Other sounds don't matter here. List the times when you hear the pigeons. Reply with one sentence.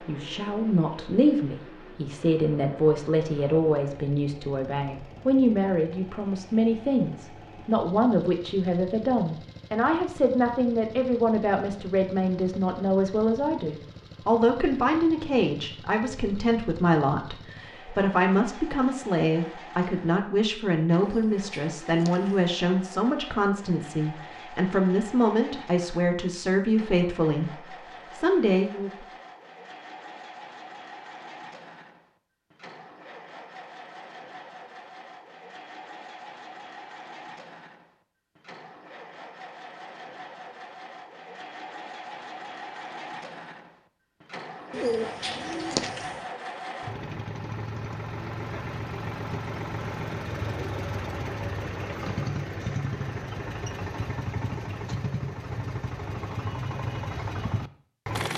You can hear the pigeons from 21.0 to 22.4 s and from 44.7 to 46.2 s.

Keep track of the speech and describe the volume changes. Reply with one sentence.
The loudness of the speech stays about the same.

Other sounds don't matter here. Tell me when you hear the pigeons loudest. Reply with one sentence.
The volume of the pigeons peaks at 45 seconds.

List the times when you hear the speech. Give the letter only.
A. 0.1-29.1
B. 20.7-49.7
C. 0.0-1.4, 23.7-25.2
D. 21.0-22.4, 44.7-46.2
A.